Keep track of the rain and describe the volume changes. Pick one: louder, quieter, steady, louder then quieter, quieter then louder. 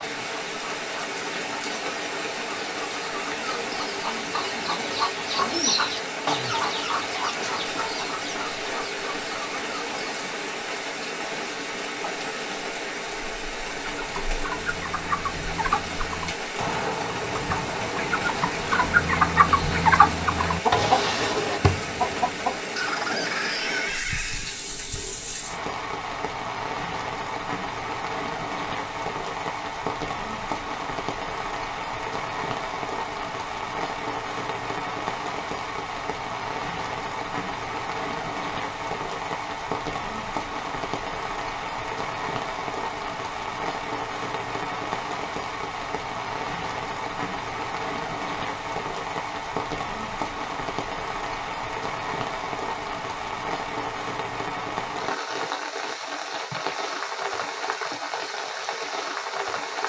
steady.